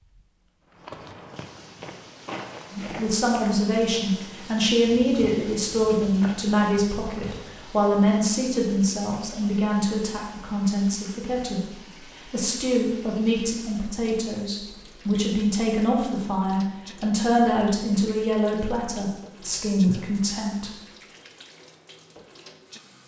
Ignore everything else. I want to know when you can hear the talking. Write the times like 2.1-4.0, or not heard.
2.7-20.7.